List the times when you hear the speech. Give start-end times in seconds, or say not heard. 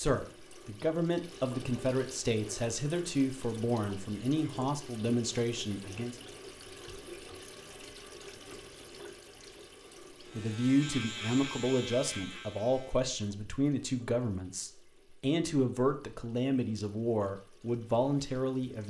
0.0-6.2, 10.3-18.8.